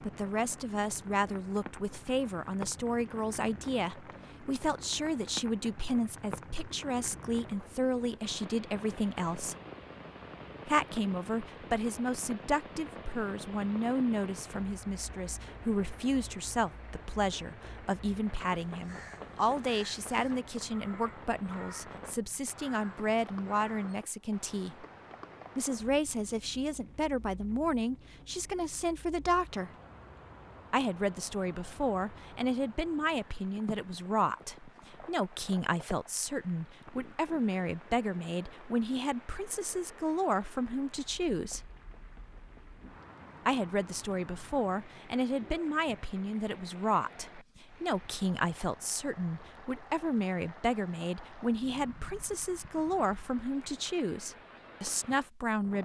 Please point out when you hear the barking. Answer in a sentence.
You can't hear the barking here.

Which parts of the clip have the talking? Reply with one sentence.
The talking can be heard from 0.0 to 9.6 s, from 10.7 to 24.9 s, from 25.6 to 29.7 s, from 30.7 to 41.6 s and from 43.5 to 55.7 s.